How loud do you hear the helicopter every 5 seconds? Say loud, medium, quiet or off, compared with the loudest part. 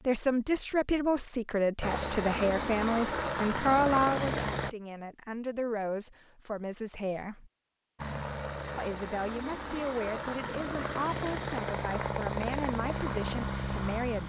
loud, medium, loud.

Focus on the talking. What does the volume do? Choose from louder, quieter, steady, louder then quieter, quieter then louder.
quieter.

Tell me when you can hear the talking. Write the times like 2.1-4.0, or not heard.
0.1-7.5, 8.8-14.2.